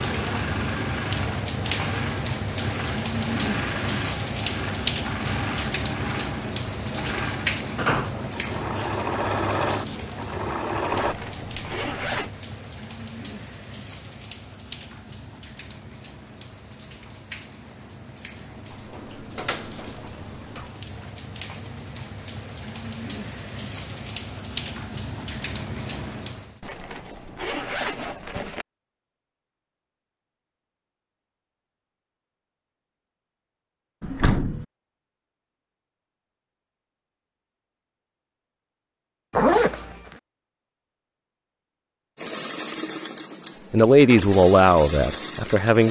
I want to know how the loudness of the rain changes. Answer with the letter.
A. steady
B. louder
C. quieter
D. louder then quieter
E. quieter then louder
E.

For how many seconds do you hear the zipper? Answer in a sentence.
The zipper can be heard for 4 seconds in total.